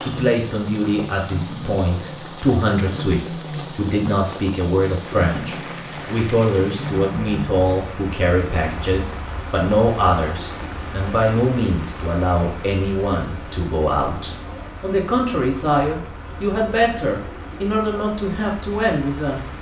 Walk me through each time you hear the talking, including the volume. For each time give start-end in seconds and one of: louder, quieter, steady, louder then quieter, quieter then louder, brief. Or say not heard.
0.1-19.4 steady.